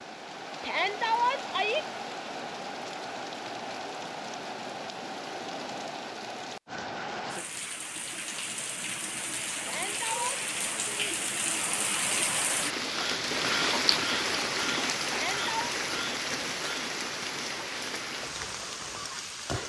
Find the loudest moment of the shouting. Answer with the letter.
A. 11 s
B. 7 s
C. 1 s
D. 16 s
C.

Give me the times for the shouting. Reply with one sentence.
You can hear the shouting from 0.6 to 1.9 s, from 9.6 to 10.4 s and from 15.1 to 15.8 s.